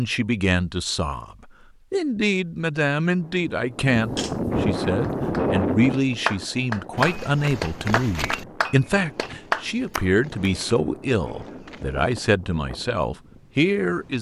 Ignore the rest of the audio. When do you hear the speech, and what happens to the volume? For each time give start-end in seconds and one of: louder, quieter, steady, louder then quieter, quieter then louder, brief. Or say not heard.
0.0-14.1 steady.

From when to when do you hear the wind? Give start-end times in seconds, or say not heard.
3.1-14.1.